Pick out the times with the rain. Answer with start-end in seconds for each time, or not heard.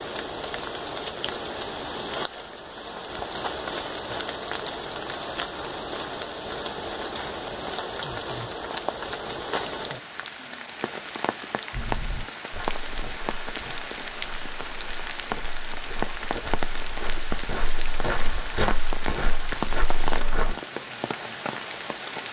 0.0-22.2.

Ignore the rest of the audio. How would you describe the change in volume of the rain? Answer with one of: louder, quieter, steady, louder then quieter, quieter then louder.
steady.